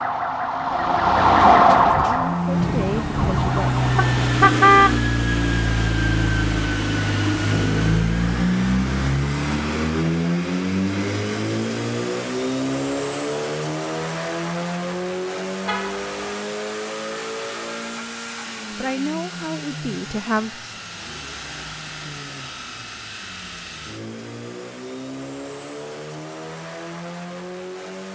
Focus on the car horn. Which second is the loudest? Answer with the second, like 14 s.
5 s.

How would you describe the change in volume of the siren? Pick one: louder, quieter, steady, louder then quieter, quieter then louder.
louder then quieter.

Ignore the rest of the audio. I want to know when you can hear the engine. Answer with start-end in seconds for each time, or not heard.
2.1-28.1.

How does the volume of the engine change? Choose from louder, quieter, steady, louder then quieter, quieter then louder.
quieter.